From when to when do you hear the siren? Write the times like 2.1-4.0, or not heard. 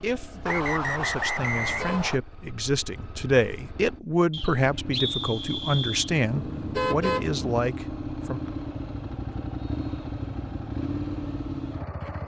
not heard.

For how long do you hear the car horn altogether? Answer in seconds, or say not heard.
2 s.